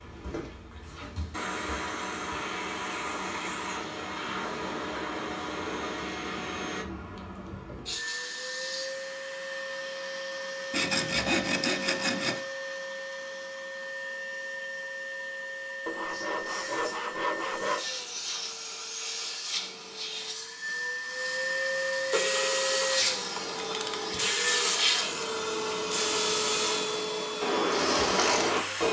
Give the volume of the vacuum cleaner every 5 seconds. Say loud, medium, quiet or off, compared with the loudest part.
medium, medium, medium, medium, loud, loud.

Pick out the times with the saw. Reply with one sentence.
You can hear the saw from 10.7 to 12.4 s and from 15.8 to 17.9 s.